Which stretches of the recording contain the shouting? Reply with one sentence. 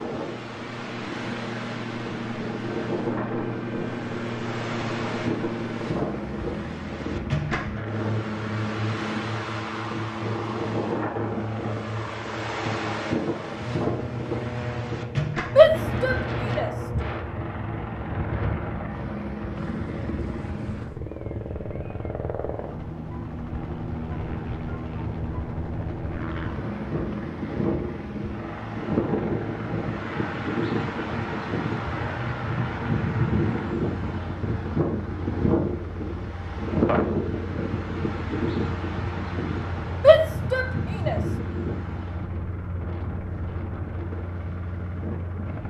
The shouting can be heard from 15.6 to 16.7 s and from 40.0 to 41.2 s.